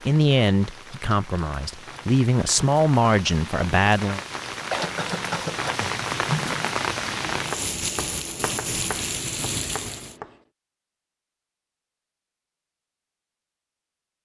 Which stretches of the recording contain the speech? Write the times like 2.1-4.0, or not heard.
0.1-4.2.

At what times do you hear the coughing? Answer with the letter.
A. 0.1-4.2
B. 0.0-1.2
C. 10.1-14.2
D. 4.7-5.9
D.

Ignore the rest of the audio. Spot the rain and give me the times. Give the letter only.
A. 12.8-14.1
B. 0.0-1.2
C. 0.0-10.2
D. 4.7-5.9
C.